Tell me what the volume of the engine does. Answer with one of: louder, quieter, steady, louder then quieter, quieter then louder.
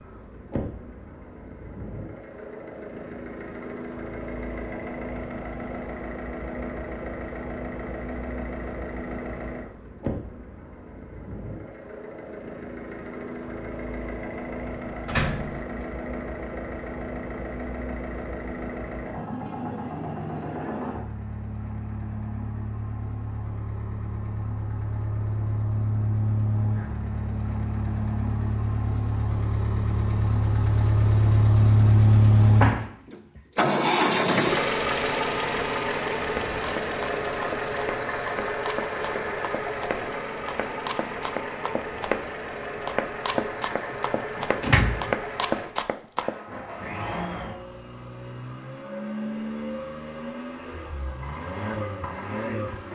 louder then quieter.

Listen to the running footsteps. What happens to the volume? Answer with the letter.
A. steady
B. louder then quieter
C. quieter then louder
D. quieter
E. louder
E.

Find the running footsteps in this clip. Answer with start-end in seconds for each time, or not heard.
36.2-46.4.